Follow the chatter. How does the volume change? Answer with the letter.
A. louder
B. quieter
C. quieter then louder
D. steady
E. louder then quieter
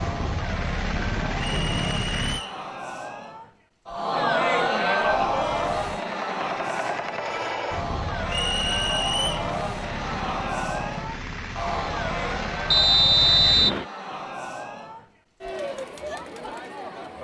E.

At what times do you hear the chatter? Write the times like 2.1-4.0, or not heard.
0.0-17.1.